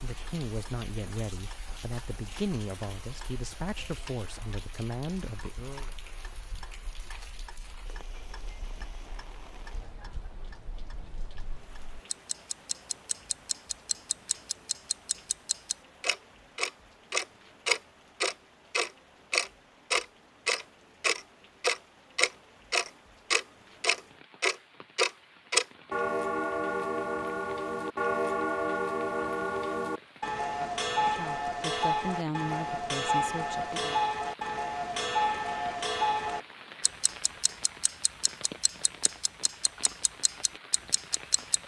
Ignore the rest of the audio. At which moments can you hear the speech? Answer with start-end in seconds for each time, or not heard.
0.0-5.9, 30.9-34.0.